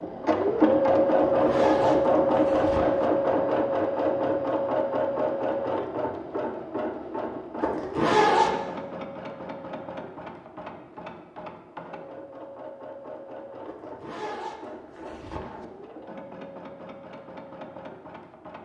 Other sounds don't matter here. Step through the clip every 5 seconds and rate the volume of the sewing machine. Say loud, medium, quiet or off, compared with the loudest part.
loud, medium, quiet, quiet.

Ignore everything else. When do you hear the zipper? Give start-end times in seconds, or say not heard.
1.2-3.1, 7.6-8.6, 13.7-15.7.